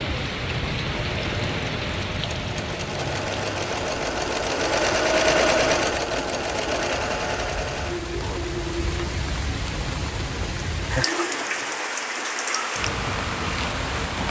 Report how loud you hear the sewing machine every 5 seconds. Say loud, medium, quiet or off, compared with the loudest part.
loud, loud, medium.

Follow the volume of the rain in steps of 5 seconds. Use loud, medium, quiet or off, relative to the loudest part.
loud, medium, loud.